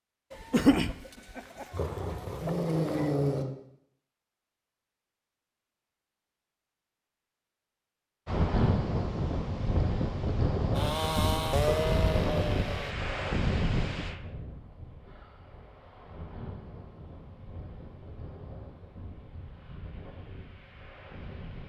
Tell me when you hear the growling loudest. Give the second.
3 s.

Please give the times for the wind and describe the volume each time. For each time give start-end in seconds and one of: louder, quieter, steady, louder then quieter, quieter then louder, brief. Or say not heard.
8.2-21.6 quieter.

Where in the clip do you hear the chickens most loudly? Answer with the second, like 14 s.
1 s.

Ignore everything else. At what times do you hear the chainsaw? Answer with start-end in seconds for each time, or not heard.
10.7-12.9.